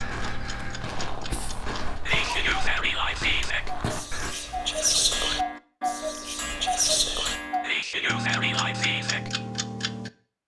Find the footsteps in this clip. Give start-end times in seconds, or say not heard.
0.0-4.3.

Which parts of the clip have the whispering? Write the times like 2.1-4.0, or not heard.
1.3-9.3.